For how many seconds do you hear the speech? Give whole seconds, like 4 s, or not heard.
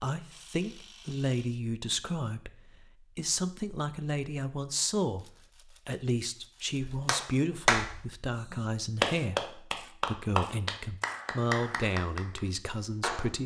13 s.